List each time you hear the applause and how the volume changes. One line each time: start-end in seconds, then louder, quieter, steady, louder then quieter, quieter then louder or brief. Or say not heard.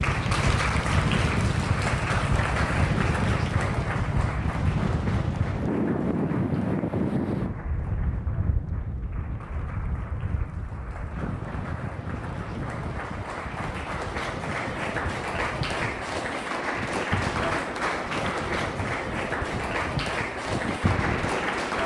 0.0-21.8 quieter then louder.